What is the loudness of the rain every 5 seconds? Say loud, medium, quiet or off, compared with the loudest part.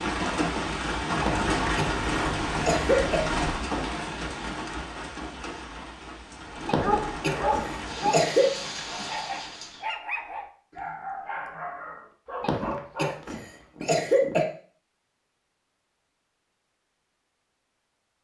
loud, medium, off, off.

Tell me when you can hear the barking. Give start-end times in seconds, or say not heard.
6.7-13.7.